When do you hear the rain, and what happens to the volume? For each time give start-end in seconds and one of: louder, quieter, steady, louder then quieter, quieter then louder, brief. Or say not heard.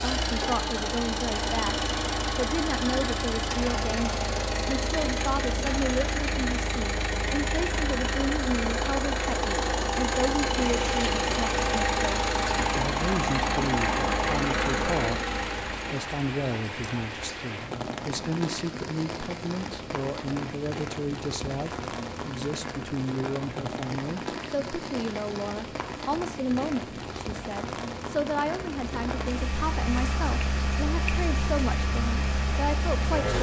10.6-33.3 steady.